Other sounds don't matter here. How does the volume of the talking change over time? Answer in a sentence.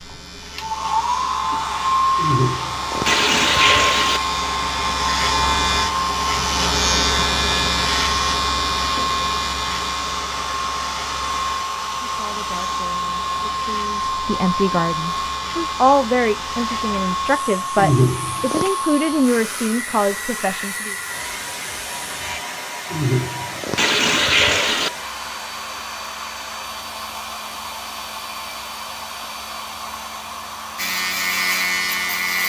The volume of the talking goes up.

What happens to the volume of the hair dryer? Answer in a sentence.
The loudness of the hair dryer goes down.